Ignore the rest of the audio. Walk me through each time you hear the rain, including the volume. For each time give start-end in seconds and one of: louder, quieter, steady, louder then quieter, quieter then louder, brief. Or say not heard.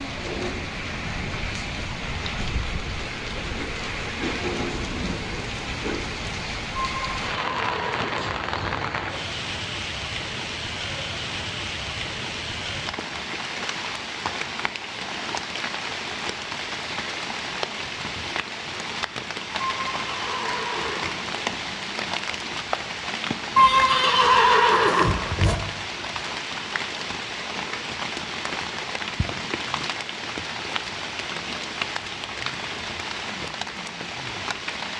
0.0-34.9 steady.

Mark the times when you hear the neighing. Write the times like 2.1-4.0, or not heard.
6.8-8.8, 19.6-21.1, 23.6-25.6.